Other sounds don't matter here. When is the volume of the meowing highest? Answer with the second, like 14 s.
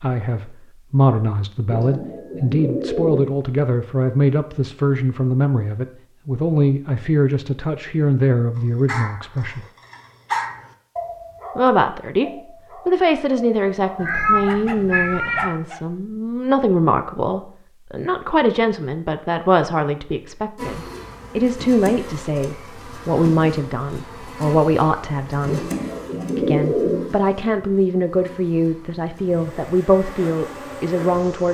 14 s.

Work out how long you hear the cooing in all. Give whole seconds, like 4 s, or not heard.
3 s.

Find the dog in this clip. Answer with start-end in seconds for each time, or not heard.
8.6-15.8.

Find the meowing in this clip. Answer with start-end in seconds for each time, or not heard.
13.9-15.5.